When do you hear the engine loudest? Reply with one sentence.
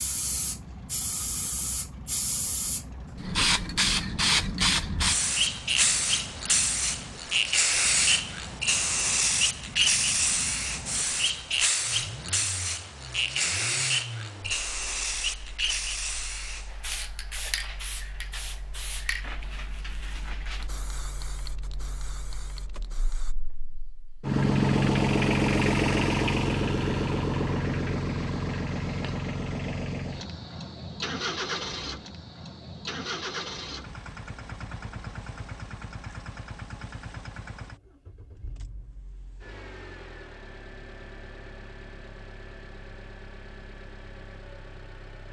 The volume of the engine peaks at 25 seconds.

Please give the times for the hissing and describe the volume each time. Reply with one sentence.
The hissing can be heard from 0.0 to 23.4 s, getting quieter.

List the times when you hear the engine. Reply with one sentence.
You can hear the engine from 0.0 to 45.2 s.